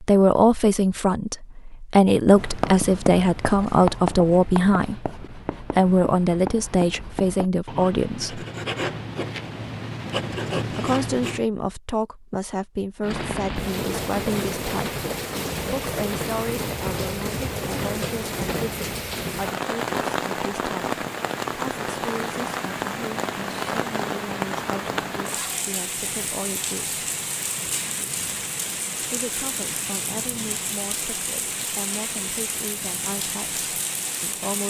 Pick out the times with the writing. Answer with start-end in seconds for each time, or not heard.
2.3-11.4.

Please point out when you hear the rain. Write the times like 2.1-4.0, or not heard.
13.0-34.6.